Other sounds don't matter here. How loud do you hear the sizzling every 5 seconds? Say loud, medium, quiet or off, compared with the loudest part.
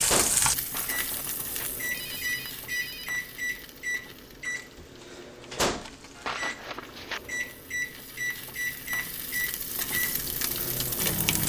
loud, medium, loud.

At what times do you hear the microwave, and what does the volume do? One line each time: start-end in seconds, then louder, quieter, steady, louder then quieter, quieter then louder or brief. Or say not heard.
0.0-11.4 steady.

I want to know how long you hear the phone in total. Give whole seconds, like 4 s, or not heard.
4 s.